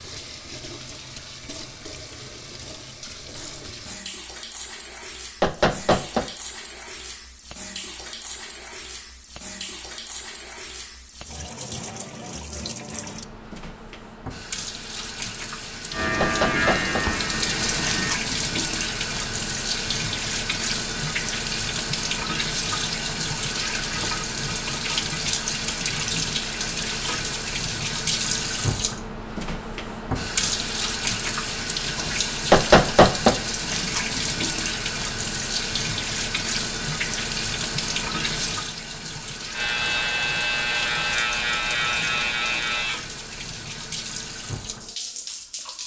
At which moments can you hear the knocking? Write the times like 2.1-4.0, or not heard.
5.4-6.2, 16.2-17.1, 32.5-33.4.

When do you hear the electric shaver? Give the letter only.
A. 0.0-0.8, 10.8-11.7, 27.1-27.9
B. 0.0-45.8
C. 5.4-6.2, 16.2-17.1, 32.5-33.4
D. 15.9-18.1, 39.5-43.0
D.